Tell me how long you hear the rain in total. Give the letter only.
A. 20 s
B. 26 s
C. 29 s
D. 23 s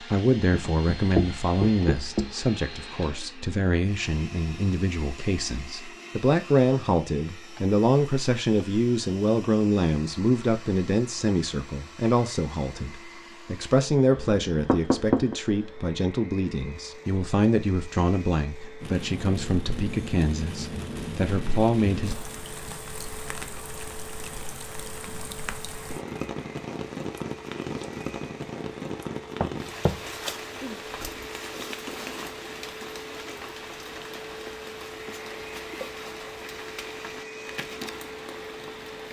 A.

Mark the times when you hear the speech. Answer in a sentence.
The speech can be heard from 0.0 to 22.1 s.